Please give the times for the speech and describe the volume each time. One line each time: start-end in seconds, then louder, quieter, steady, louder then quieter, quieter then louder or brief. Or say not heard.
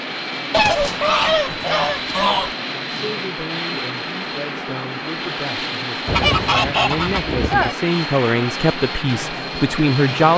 3.0-10.3 louder.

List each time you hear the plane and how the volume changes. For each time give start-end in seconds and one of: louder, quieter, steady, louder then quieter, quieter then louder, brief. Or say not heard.
0.0-10.3 steady.